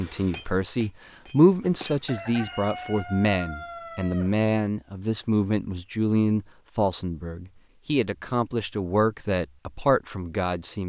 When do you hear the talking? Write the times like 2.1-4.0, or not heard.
0.0-10.8.